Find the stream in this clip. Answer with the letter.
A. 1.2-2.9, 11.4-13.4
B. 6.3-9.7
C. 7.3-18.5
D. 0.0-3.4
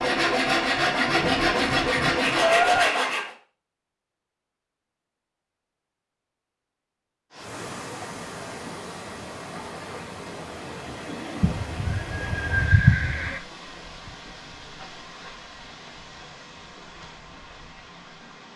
C.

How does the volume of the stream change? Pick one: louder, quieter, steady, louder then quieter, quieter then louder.
quieter.